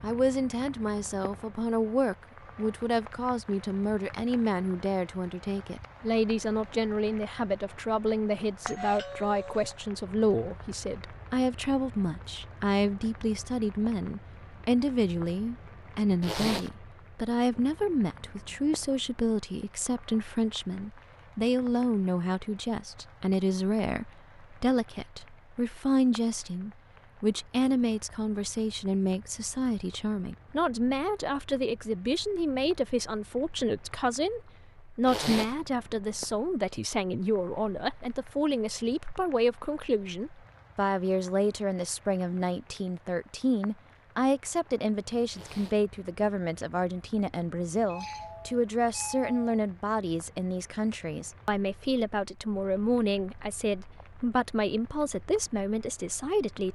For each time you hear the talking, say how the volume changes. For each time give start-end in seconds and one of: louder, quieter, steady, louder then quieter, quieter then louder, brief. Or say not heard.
0.0-56.7 steady.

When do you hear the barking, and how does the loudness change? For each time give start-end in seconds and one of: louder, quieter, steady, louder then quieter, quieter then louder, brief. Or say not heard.
not heard.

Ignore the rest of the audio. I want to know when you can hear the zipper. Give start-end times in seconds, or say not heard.
16.2-16.7, 35.0-35.5, 45.3-45.8.